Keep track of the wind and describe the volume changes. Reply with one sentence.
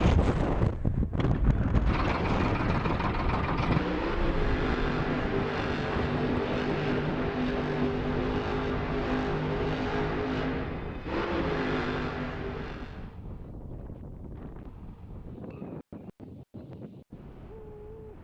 The volume of the wind goes down.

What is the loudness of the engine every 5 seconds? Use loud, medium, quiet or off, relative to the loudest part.
loud, loud, loud, off.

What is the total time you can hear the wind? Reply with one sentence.
You can hear the wind for 18 seconds altogether.